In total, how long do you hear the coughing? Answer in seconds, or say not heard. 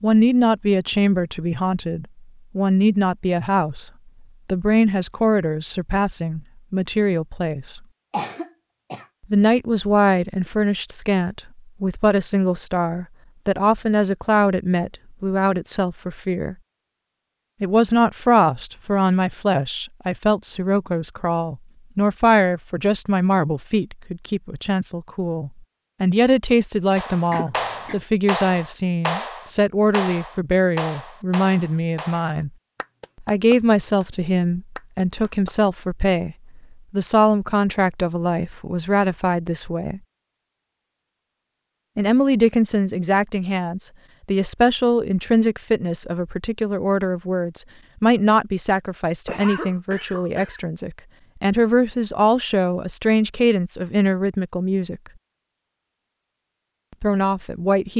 3 s.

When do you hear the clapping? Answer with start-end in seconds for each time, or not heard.
26.9-35.5.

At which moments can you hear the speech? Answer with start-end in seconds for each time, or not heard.
0.0-7.8, 9.3-16.6, 17.6-32.5, 33.2-40.0, 42.0-55.0, 57.0-57.9.